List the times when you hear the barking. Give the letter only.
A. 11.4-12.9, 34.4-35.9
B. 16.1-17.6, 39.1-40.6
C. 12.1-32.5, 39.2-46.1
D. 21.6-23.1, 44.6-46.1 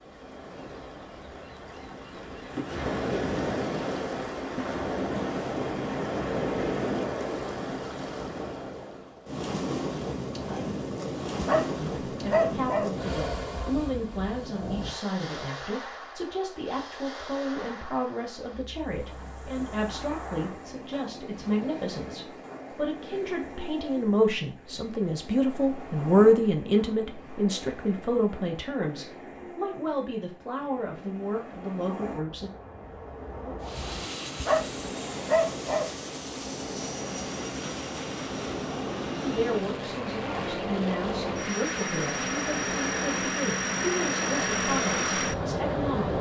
A.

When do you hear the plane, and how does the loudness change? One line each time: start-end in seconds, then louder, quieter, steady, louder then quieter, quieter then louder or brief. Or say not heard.
33.6-46.1 louder.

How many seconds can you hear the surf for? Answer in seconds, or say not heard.
46 s.